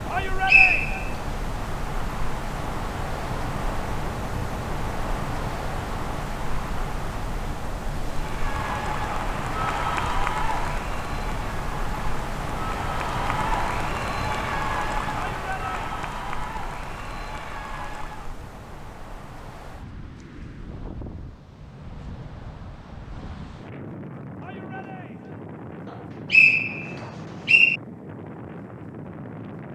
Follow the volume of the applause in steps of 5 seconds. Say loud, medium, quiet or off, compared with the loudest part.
off, loud, loud, medium, off, off.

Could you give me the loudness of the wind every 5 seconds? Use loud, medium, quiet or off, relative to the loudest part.
loud, loud, loud, medium, medium, medium.